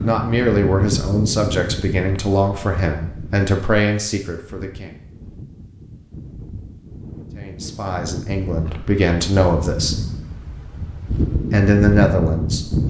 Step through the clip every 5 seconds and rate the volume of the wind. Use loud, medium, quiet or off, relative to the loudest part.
medium, medium, loud.